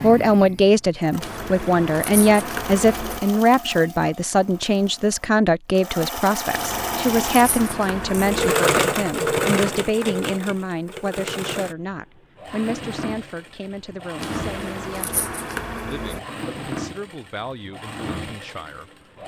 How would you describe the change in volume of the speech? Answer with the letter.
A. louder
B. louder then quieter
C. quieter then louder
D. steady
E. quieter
E.